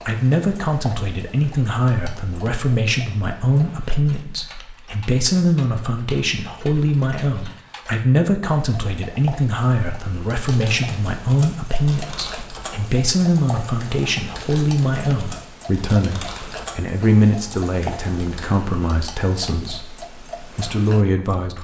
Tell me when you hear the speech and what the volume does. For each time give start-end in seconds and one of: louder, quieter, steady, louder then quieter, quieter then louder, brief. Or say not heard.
0.1-21.5 steady.